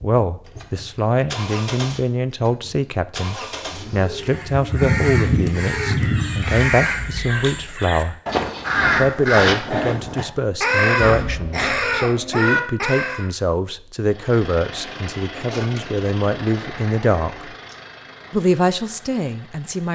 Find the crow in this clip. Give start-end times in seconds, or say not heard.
4.2-13.2.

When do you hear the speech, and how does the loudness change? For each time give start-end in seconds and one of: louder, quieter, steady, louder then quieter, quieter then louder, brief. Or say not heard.
0.0-8.2 steady
8.9-17.5 steady
18.3-19.8 brief.